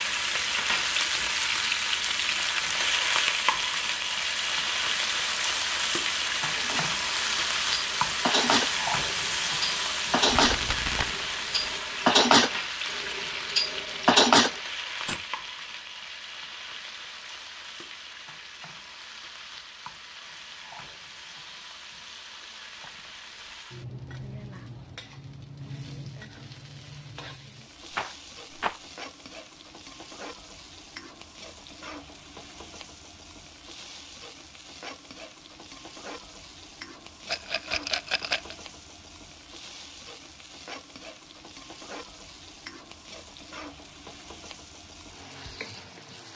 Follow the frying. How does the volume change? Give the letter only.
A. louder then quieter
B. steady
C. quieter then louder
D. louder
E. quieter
E.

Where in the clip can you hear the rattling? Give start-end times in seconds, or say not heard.
10.2-11.2, 27.9-28.8, 37.2-38.5.